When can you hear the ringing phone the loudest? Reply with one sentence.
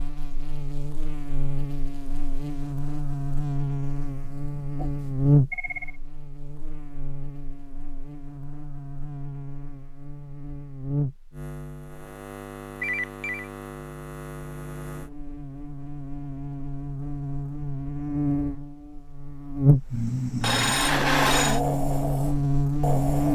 The volume of the ringing phone peaks at 21 seconds.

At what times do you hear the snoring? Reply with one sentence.
You can hear the snoring from 19.9 to 23.3 s.